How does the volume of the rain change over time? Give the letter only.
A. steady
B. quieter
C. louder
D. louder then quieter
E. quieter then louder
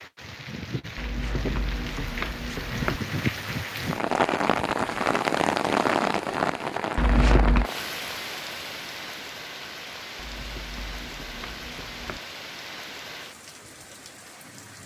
D.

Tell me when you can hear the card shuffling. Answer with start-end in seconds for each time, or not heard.
0.9-3.0, 7.0-7.7, 10.2-12.2.